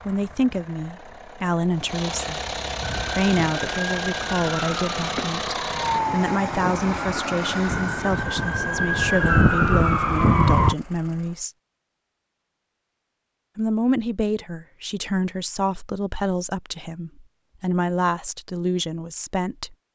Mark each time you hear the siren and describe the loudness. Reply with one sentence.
You can hear the siren from 2.9 to 10.8 s, getting louder.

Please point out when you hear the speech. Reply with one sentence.
You can hear the speech from 0.1 to 11.5 s and from 13.6 to 19.8 s.